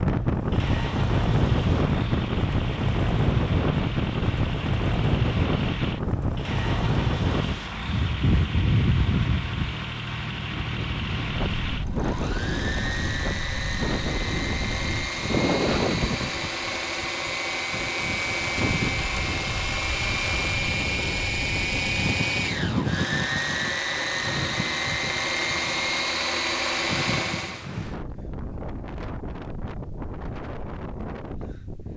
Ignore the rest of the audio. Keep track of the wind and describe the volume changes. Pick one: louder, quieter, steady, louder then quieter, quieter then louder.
quieter.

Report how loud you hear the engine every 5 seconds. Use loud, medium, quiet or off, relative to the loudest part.
medium, medium, medium, loud, loud, loud, off.